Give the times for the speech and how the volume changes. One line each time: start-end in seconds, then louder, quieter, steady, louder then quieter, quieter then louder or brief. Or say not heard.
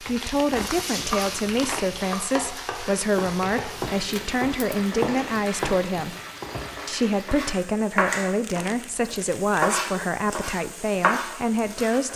0.0-6.2 steady
6.8-12.1 steady.